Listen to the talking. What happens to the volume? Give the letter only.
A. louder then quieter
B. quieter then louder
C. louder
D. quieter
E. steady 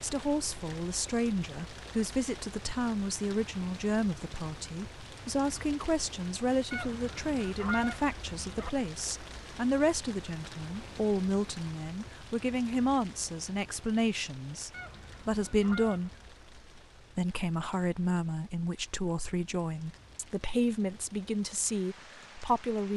E.